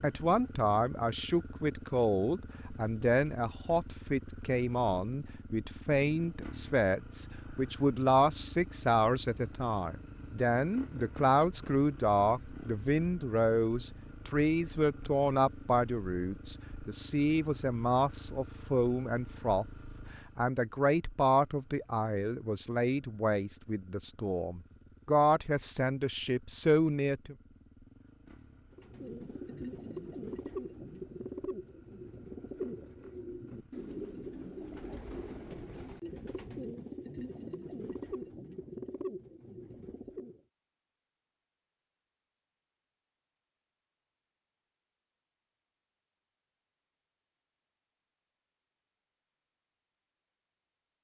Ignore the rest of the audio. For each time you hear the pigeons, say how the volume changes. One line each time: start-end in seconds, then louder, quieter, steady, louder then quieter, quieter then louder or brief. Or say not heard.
28.7-40.4 steady.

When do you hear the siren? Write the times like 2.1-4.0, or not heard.
not heard.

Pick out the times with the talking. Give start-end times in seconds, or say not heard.
0.0-19.6, 20.4-27.4.